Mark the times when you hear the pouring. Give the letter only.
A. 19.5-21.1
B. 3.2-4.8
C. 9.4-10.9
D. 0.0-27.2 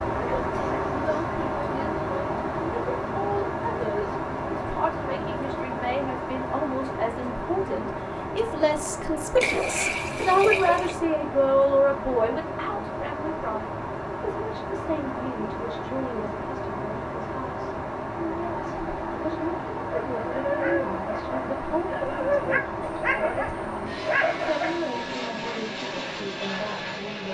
C.